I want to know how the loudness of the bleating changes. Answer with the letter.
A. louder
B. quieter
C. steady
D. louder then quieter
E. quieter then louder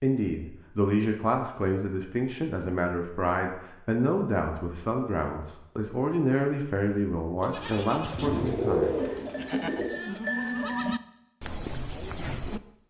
D.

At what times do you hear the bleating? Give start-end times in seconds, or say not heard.
7.4-12.6.